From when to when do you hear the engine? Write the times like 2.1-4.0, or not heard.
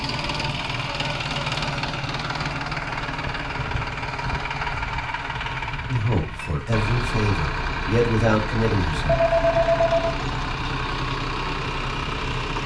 0.0-12.6.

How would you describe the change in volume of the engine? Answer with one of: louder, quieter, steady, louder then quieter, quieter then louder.
steady.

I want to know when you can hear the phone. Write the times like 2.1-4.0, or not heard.
9.1-10.2.